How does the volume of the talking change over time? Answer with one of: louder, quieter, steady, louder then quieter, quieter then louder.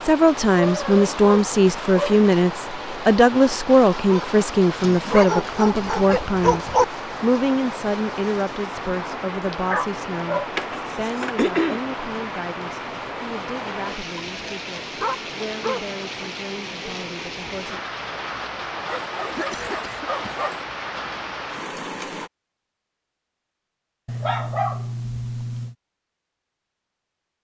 quieter.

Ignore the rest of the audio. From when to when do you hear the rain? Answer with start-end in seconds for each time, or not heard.
0.0-22.3.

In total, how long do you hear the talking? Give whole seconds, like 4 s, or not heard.
18 s.